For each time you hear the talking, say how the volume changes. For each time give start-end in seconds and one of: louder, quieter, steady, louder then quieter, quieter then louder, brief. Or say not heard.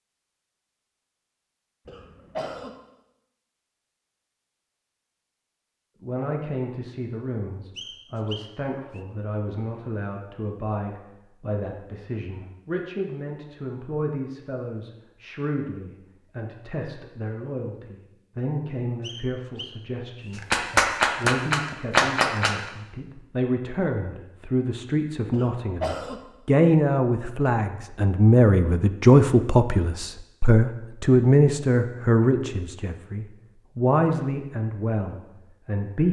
6.0-36.0 louder.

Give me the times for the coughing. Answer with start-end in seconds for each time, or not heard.
1.9-2.7, 25.3-26.2.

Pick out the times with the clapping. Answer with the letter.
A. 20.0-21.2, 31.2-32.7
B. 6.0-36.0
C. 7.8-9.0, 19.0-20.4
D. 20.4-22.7
D.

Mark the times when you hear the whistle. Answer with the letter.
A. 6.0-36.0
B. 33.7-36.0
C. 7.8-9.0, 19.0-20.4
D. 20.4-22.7
C.